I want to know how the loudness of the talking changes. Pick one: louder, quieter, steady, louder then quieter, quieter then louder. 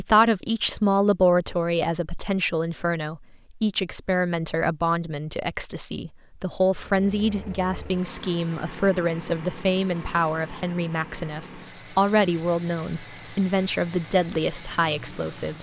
steady.